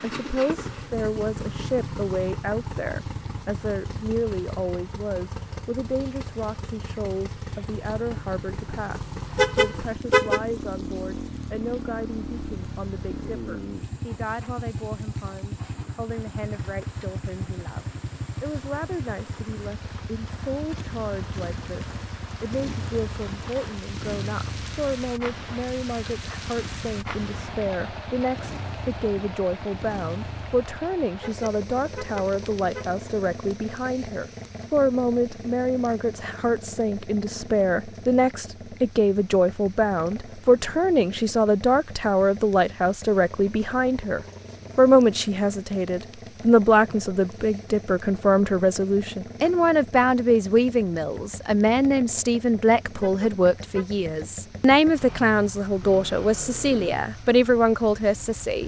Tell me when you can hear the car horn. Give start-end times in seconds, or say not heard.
9.3-10.4, 31.2-32.9, 53.0-53.9.